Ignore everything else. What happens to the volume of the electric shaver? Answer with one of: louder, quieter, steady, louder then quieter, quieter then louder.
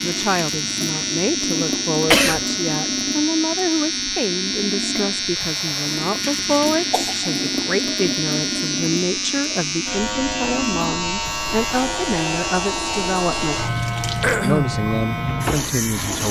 steady.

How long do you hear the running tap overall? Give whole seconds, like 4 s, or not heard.
16 s.